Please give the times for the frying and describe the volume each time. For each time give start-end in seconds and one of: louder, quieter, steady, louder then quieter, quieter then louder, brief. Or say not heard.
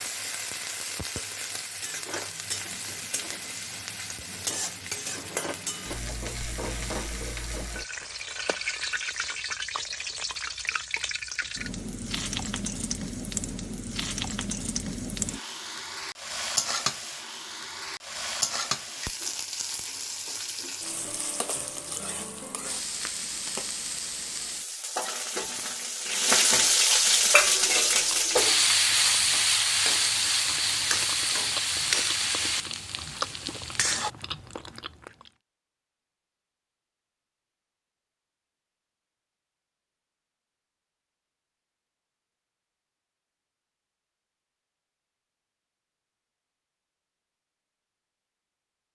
0.0-34.1 louder.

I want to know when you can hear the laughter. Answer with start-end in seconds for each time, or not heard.
not heard.